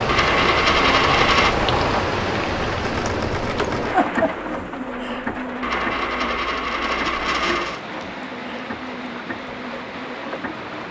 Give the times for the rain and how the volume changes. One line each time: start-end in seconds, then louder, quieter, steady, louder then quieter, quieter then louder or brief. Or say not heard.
0.0-10.8 quieter.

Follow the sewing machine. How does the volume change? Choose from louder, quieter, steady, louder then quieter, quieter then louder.
quieter.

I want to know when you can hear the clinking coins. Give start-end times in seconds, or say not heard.
0.1-1.6, 5.6-7.8.